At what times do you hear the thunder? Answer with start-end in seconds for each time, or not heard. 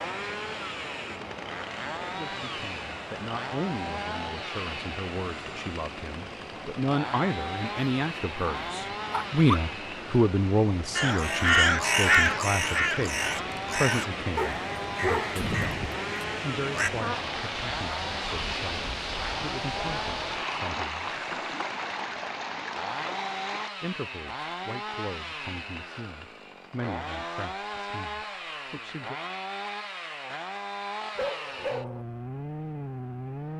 not heard.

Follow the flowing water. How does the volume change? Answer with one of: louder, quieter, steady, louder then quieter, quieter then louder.
louder.